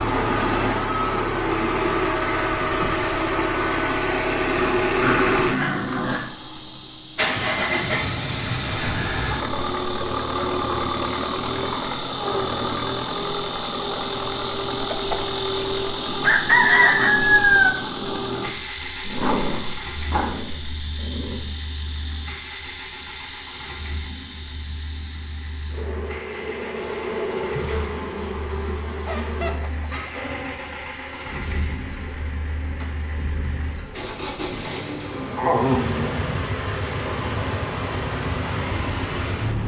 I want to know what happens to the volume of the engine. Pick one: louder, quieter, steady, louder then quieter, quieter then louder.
quieter then louder.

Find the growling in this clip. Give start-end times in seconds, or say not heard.
4.5-6.2, 19.1-21.5, 35.4-36.2.